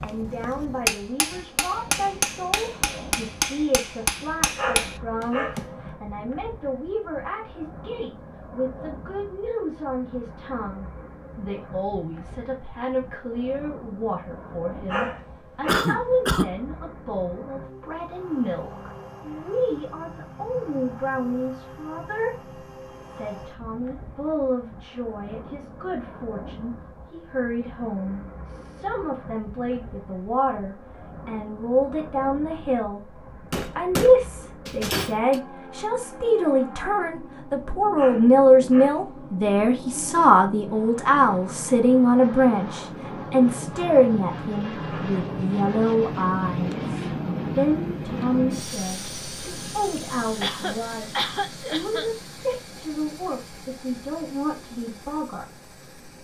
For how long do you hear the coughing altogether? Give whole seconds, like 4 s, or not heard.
3 s.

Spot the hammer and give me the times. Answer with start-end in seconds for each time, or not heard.
0.0-5.7, 33.5-35.4.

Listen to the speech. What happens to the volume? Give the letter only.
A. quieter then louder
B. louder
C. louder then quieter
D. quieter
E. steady
C.